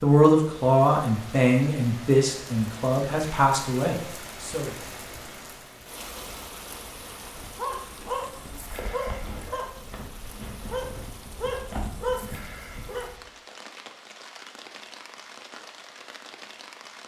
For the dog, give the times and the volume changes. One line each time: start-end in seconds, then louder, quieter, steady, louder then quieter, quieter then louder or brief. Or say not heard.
7.2-13.2 quieter then louder.